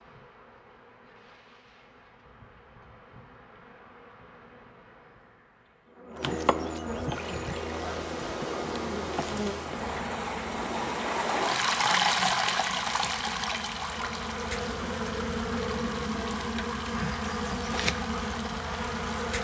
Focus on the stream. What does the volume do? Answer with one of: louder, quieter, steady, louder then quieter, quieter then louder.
louder then quieter.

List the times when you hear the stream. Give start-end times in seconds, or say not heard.
7.1-19.3.